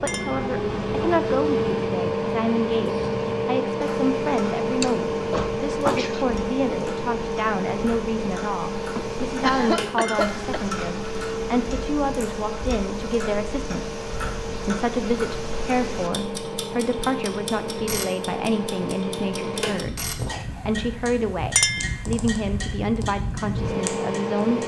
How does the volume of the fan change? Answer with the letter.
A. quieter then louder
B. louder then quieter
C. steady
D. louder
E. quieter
E.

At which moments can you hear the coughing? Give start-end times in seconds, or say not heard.
4.8-6.2, 8.9-10.7, 20.1-20.8.